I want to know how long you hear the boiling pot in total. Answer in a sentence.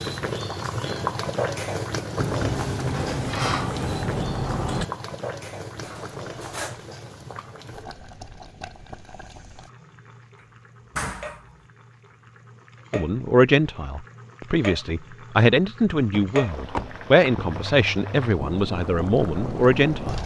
The boiling pot can be heard for 20 seconds in total.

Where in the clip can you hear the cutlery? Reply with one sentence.
The cutlery can be heard from 5.8 to 6.8 s.